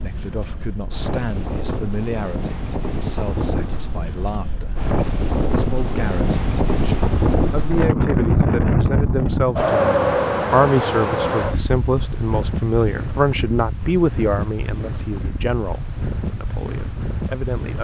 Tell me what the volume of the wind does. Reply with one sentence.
The loudness of the wind goes up, then down.